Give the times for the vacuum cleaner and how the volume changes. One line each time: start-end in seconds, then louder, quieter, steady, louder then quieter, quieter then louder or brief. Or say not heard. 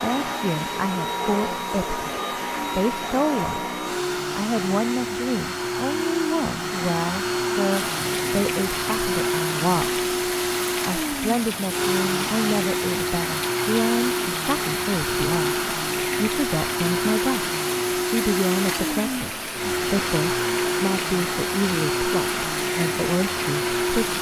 0.0-24.1 steady.